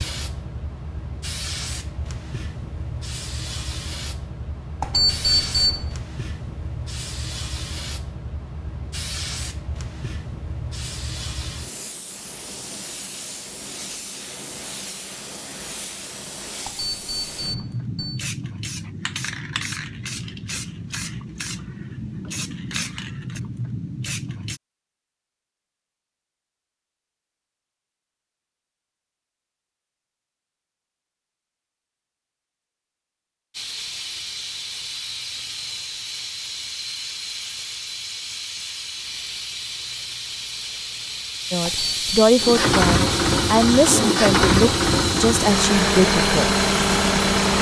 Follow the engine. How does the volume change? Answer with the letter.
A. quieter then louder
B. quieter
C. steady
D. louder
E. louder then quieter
C.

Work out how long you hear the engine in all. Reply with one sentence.
You can hear the engine for 5 seconds altogether.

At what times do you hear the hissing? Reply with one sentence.
You can hear the hissing from 0.0 to 24.6 s and from 33.5 to 47.5 s.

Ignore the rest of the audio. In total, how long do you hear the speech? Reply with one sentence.
The speech can be heard for 5 seconds in total.